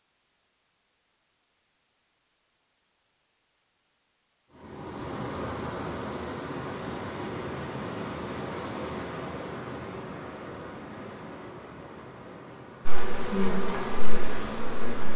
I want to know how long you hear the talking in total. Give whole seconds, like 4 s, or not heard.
not heard.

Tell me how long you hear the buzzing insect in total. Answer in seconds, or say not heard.
2 s.